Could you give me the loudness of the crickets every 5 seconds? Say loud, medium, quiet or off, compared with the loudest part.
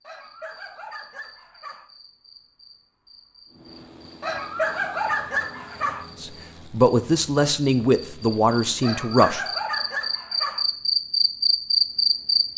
quiet, quiet, loud.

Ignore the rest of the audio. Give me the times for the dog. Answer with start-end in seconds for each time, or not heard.
0.0-1.9, 4.2-6.0, 8.8-10.7.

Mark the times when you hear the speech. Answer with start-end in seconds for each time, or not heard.
6.2-9.4.